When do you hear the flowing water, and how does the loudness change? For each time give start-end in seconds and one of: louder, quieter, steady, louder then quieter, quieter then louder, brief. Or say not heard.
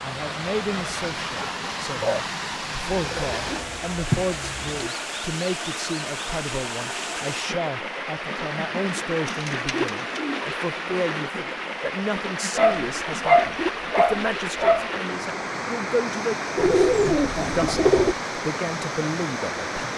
0.0-19.9 steady.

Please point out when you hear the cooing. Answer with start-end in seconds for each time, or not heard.
2.9-4.9, 9.2-10.6, 16.6-18.1.